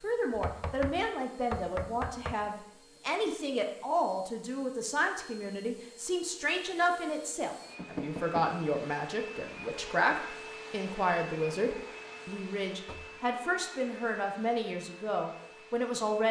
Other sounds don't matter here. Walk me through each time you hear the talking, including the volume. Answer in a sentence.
You can hear the talking from 0.0 to 16.2 s, at a steady volume.